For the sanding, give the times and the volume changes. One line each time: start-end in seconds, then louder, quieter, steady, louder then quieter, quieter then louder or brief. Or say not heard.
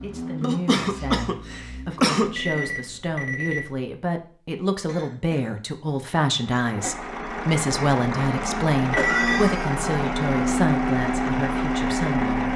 not heard.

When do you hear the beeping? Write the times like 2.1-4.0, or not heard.
2.2-3.9, 8.9-9.6.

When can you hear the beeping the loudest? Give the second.
9 s.